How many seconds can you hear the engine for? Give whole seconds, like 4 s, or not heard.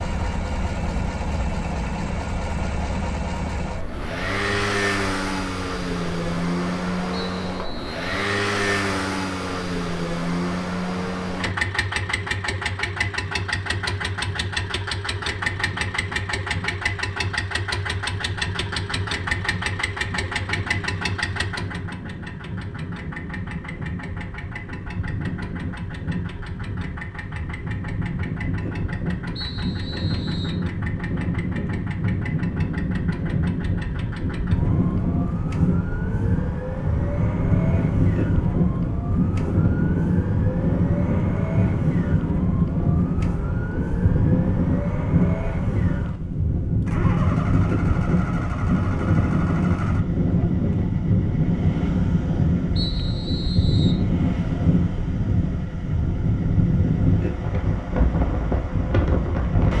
60 s.